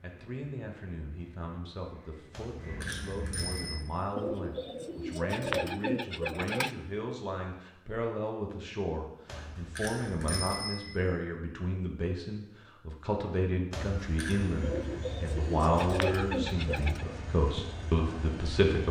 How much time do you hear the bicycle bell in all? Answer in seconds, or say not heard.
4 s.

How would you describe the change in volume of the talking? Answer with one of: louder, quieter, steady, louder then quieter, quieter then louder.
louder.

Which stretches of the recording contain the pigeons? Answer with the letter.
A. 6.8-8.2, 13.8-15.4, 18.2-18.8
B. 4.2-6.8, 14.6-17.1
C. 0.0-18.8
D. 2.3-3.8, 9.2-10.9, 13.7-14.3
B.